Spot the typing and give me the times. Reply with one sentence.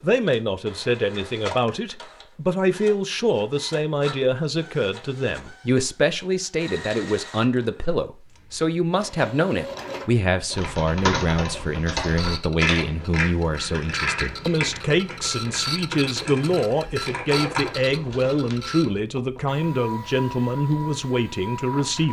You can hear the typing from 10.5 to 18.6 s.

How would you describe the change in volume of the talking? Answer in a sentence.
The loudness of the talking stays about the same.